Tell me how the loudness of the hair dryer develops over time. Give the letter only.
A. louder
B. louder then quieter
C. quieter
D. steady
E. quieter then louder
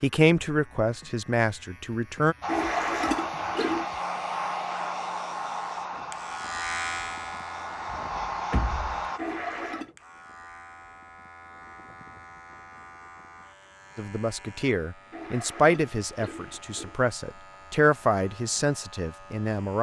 E.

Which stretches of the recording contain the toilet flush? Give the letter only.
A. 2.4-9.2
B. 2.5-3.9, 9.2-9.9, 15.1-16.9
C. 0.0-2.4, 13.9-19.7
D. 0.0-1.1
B.